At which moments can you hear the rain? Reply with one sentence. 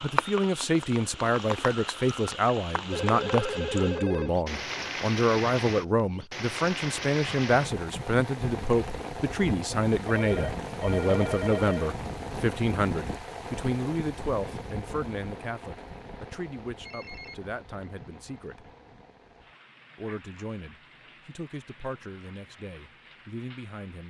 You can hear the rain from 0.0 to 24.0 s.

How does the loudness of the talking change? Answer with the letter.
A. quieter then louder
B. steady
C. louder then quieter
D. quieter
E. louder
D.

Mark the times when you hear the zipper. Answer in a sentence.
The zipper can't be heard in this clip.